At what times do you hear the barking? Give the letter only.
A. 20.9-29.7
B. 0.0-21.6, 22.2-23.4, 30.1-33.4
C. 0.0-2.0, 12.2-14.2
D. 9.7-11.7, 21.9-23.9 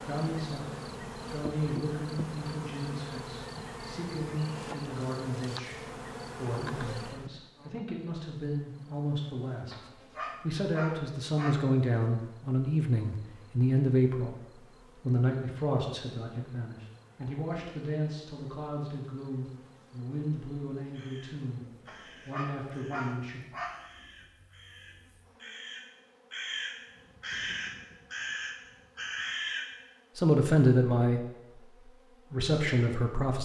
D.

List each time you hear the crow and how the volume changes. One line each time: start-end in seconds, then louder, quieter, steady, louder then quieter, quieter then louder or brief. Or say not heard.
20.9-29.7 louder.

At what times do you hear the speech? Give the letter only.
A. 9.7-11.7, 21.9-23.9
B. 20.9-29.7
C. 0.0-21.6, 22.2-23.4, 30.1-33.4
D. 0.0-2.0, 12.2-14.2
C.